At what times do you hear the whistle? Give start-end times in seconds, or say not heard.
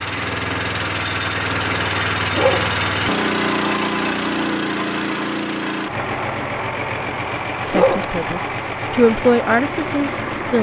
not heard.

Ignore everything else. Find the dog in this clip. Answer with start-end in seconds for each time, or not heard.
2.3-2.7, 7.7-8.2.